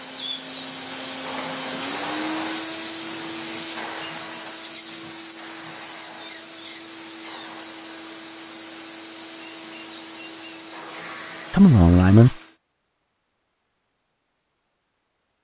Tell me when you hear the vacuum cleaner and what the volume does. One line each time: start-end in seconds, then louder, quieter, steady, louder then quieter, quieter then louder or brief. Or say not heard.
0.0-12.6 quieter.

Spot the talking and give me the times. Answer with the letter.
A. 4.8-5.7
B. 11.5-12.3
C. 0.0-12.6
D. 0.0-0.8
B.